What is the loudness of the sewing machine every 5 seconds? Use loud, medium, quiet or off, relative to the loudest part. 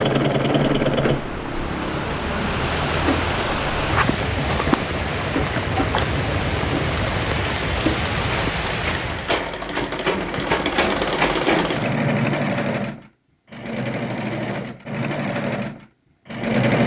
loud, medium, loud, loud.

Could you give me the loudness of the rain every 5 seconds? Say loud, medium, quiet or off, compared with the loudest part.
loud, loud, off, off.